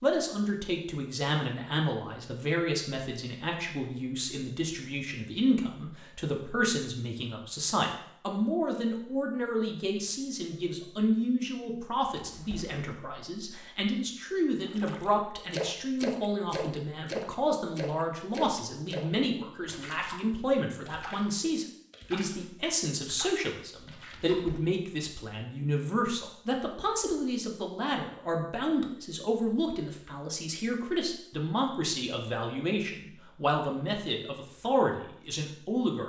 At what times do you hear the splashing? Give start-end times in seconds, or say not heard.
14.7-24.6.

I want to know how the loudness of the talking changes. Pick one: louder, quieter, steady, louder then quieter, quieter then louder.
steady.